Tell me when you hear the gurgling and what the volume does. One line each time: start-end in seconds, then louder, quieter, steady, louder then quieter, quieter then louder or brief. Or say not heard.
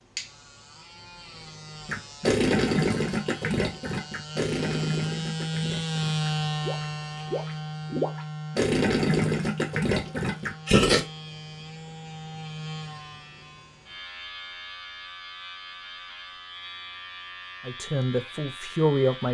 1.9-11.1 quieter then louder.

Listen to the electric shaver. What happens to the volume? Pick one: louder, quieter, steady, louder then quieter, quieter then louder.
louder then quieter.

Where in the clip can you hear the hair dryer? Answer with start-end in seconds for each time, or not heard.
not heard.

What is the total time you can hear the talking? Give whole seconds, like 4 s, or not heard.
2 s.